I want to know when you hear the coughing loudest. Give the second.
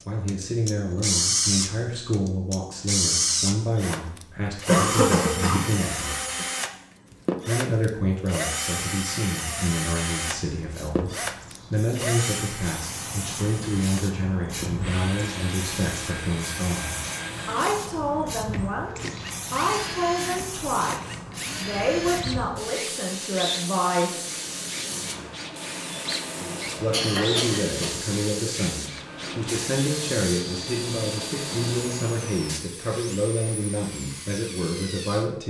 5 s.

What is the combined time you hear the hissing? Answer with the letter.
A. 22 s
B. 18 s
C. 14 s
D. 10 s
A.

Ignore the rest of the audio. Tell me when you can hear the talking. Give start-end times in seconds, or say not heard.
0.1-6.2, 7.5-24.3, 26.6-35.4.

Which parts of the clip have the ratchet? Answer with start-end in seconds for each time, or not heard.
not heard.